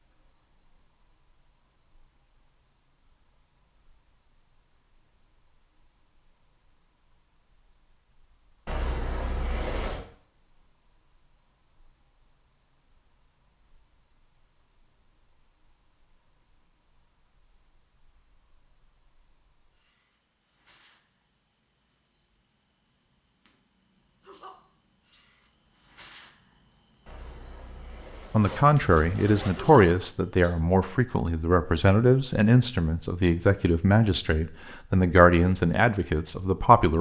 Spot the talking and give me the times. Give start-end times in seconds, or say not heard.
28.3-36.9.